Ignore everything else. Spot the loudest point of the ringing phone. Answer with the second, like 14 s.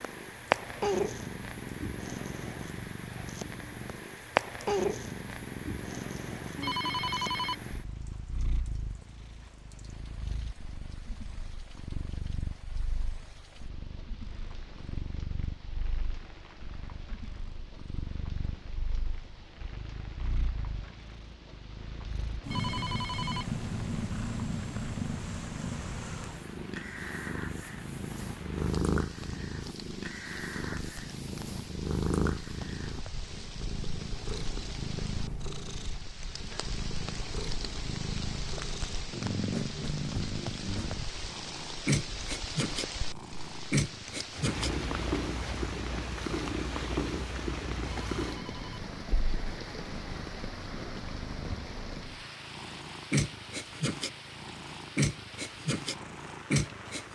7 s.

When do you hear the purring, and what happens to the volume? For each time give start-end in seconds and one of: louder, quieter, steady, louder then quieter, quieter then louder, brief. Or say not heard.
0.0-57.1 quieter then louder.